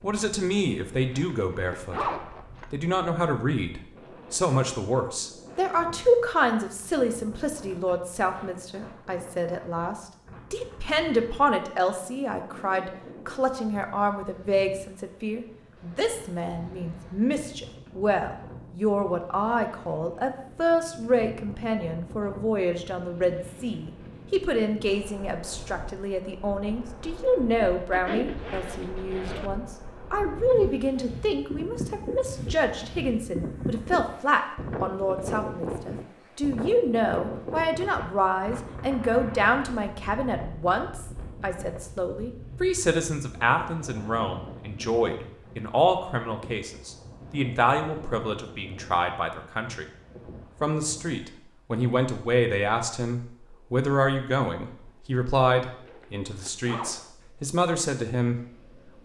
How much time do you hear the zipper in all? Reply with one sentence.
The zipper can be heard for 5 seconds in total.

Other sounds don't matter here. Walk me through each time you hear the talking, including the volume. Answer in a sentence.
The talking can be heard briefly from 0.0 to 2.1 s; from 2.7 to 49.9 s, at a steady volume; and from 50.6 to 58.4 s, at a steady volume.